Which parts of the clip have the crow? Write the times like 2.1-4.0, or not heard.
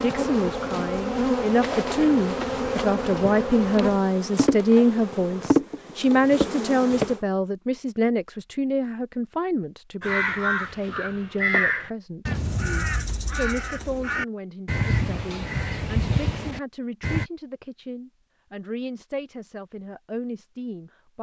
10.0-17.3.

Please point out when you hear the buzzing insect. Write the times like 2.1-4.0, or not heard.
0.0-7.2.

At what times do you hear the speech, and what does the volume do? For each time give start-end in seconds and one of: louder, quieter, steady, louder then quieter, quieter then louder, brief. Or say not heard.
0.0-21.1 quieter.